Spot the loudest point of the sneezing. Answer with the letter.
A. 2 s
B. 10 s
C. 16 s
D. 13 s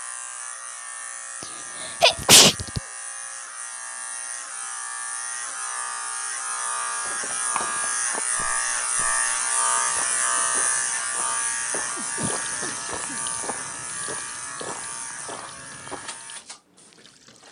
A.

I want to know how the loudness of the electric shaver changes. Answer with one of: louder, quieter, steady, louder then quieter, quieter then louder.
louder then quieter.